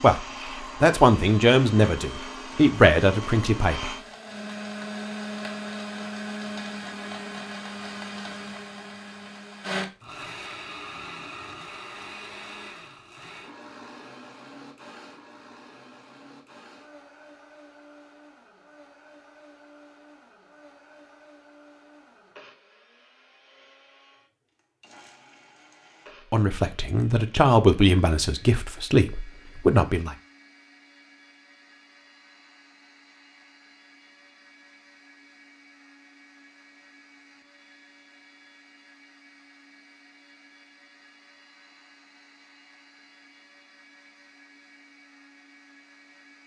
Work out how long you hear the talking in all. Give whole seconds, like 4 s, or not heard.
8 s.